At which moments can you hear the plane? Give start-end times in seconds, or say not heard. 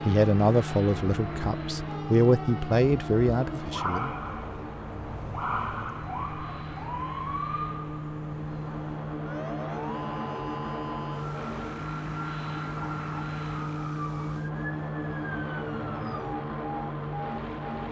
0.0-17.8.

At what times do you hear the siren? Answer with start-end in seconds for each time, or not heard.
0.0-17.8.